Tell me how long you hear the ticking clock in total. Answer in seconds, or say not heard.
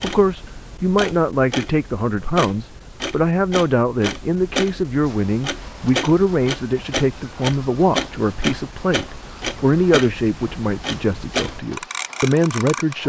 13 s.